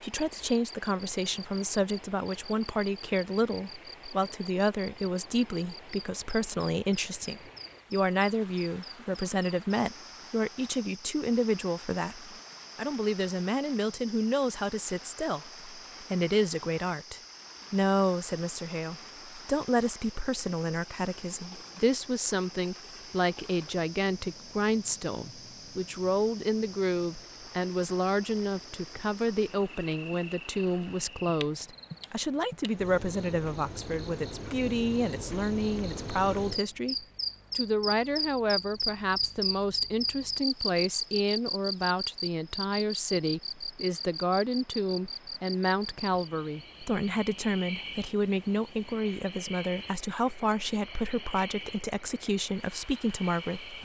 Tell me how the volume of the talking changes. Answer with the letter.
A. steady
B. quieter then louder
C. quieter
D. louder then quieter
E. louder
A.